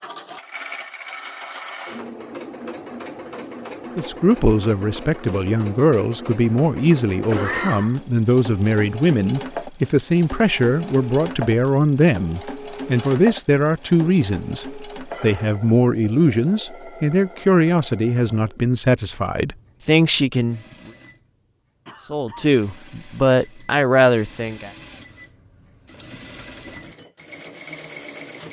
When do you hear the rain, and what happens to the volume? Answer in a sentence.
You can't hear the rain here.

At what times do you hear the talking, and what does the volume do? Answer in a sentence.
You can hear the talking from 4.0 to 20.6 s, at a steady volume; and briefly from 22.1 to 24.7 s.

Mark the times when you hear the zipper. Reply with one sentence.
You can't hear the zipper here.